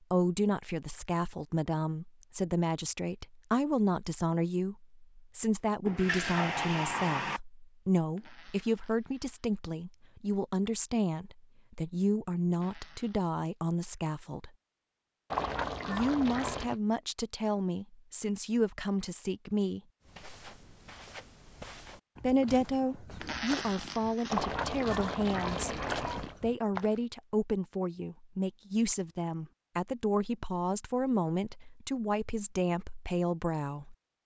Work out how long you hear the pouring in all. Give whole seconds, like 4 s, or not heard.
5 s.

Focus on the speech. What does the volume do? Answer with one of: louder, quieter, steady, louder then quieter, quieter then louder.
steady.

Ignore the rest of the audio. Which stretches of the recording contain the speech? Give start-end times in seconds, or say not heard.
0.1-14.5, 15.8-19.8, 22.2-34.0.